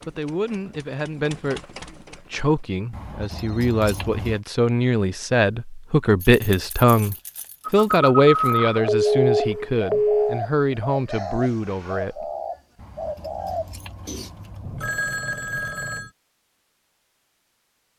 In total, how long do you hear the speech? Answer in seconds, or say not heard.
12 s.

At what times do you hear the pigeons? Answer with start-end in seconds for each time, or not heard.
8.8-14.3.